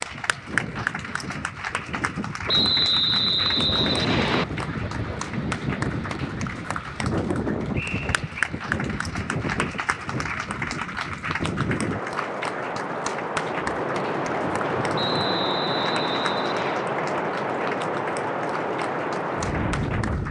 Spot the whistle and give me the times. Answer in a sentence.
You can hear the whistle from 2.5 to 4.5 s, from 7.8 to 8.2 s and from 14.9 to 16.9 s.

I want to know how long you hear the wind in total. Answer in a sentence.
You can hear the wind for 20 seconds altogether.